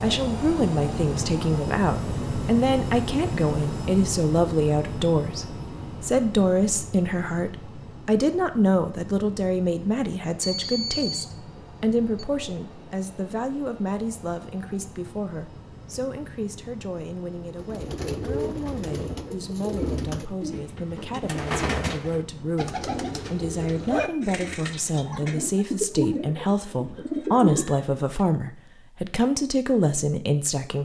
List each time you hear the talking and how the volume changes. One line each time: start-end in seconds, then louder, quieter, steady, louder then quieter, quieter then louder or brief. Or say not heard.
0.0-30.8 quieter then louder.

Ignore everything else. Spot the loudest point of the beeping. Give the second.
11 s.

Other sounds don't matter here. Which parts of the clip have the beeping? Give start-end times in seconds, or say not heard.
10.4-12.2.